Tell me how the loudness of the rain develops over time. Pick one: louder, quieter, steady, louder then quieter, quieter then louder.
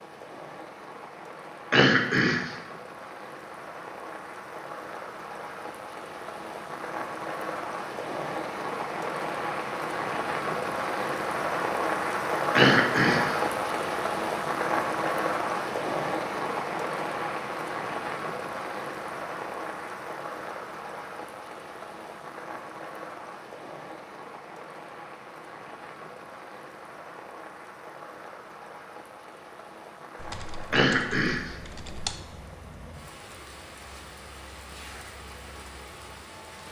louder then quieter.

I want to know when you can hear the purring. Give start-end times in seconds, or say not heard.
not heard.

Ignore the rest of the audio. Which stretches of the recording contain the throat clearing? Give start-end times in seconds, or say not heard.
1.7-2.5, 12.6-13.3, 30.7-31.6.